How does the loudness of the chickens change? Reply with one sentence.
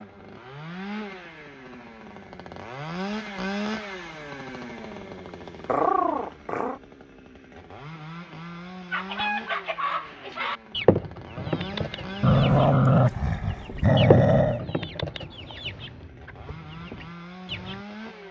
The loudness of the chickens goes down.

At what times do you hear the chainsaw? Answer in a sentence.
You can hear the chainsaw from 0.0 to 18.2 s.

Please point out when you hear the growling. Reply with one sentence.
The growling can be heard from 5.7 to 6.8 s and from 12.2 to 14.7 s.